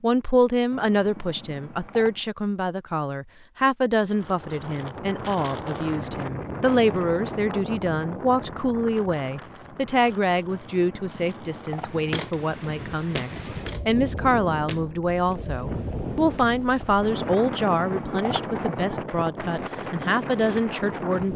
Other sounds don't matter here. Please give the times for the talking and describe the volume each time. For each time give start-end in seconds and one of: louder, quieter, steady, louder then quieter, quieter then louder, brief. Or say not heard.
0.0-21.3 steady.